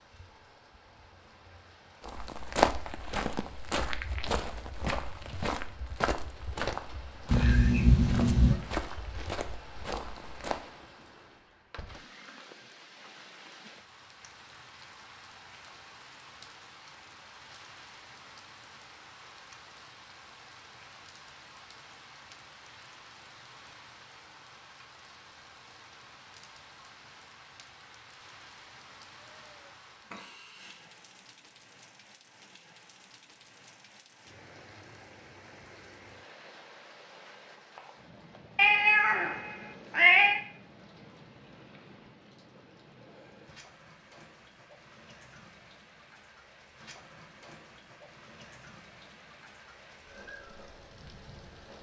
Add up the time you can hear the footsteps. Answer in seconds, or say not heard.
9 s.